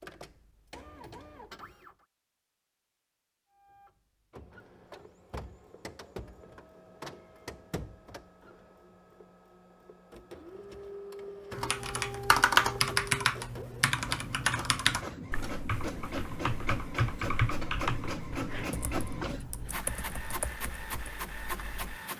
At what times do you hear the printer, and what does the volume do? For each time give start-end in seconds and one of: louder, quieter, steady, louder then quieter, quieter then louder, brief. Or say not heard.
0.0-1.9 brief
3.5-22.1 louder.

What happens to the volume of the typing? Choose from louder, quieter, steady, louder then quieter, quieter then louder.
quieter.